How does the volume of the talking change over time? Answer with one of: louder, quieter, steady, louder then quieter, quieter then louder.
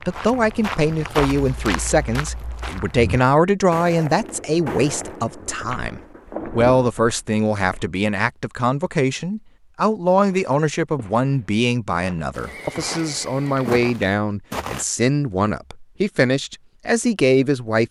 steady.